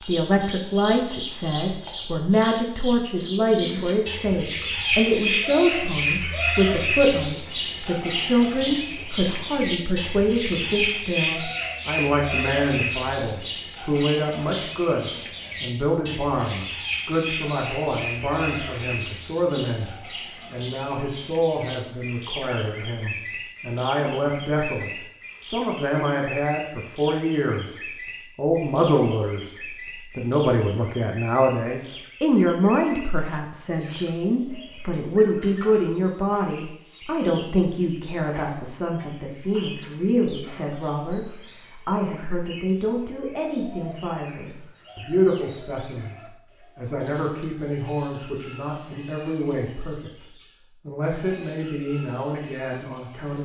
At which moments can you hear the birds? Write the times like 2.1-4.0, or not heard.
0.0-53.4.